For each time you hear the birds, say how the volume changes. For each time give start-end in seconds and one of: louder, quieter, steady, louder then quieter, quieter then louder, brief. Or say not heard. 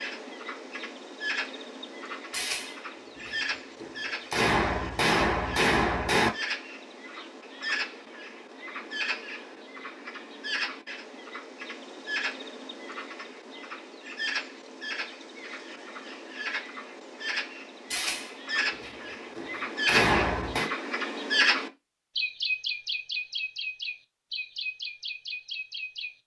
0.0-26.1 louder.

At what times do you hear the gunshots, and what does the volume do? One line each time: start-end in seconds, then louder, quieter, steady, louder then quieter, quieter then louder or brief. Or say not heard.
2.3-6.3 louder
17.9-20.7 brief.